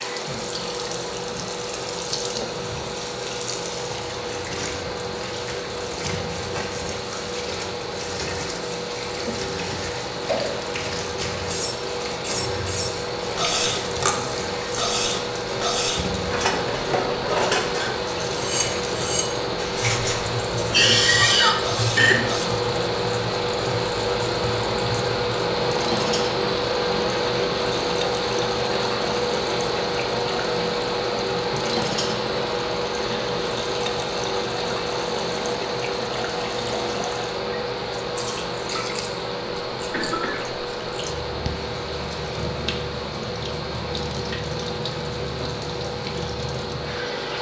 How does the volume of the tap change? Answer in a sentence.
The volume of the tap stays about the same.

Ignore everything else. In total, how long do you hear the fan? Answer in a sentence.
You can hear the fan for 47 seconds altogether.